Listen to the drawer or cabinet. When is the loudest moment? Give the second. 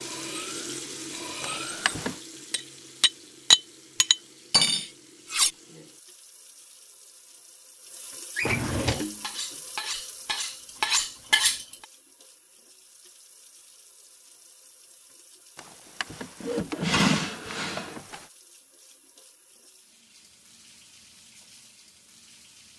17 s.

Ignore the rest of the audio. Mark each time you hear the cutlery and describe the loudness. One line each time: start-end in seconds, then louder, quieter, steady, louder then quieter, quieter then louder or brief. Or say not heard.
0.0-5.5 louder then quieter
8.8-11.8 brief.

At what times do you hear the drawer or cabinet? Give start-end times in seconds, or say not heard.
1.4-2.1, 8.3-9.1, 15.6-18.2.